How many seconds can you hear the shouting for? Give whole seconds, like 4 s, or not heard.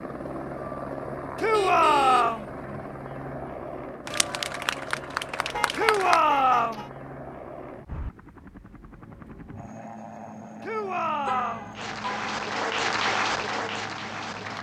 3 s.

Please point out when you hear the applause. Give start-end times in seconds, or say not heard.
4.0-6.2, 11.8-14.5.